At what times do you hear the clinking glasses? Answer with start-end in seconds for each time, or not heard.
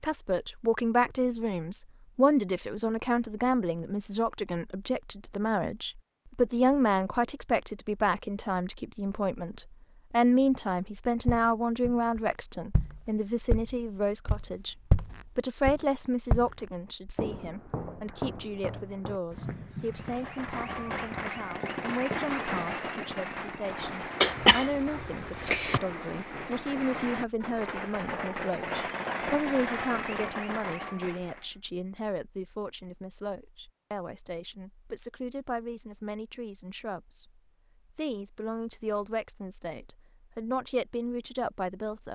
not heard.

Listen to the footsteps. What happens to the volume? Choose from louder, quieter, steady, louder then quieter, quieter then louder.
louder then quieter.